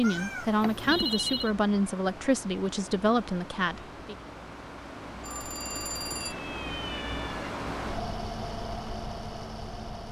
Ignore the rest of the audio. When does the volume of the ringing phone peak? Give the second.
1 s.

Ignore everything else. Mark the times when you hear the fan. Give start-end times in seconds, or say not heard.
0.0-10.0.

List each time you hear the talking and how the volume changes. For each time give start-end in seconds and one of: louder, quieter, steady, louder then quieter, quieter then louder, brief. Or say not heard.
0.0-4.2 steady.